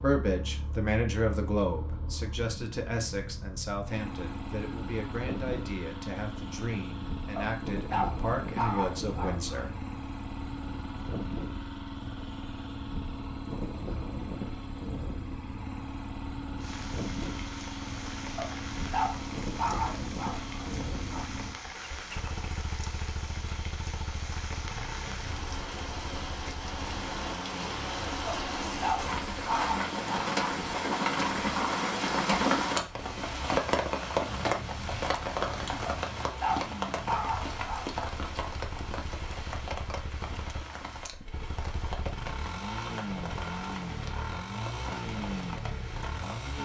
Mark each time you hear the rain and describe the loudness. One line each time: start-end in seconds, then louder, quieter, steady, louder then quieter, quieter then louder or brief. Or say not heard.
16.6-46.6 louder then quieter.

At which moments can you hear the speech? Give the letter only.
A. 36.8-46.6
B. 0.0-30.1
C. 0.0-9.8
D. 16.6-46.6
C.